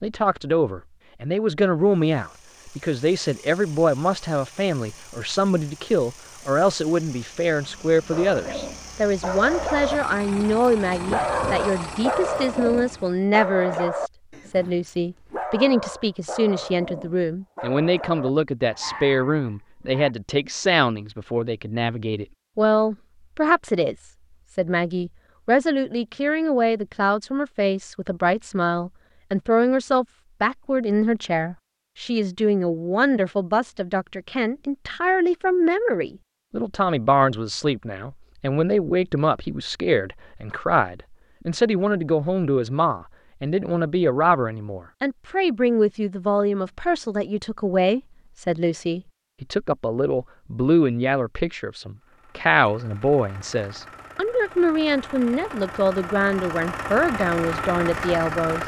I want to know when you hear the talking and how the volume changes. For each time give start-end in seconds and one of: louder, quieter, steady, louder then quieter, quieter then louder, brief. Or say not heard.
0.0-58.6 steady.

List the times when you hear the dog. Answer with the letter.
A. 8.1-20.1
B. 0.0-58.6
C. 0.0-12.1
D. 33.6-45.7
A.